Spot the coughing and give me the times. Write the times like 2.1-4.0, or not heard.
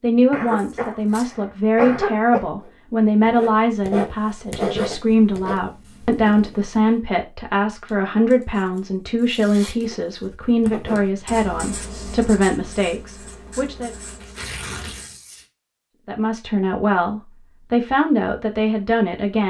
0.3-2.5.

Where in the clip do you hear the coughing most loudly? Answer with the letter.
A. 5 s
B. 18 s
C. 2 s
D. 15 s
C.